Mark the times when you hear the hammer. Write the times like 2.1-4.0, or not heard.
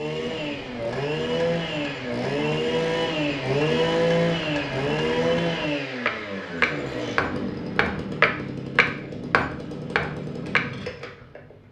0.1-10.8.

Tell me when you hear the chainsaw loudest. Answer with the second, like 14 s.
4 s.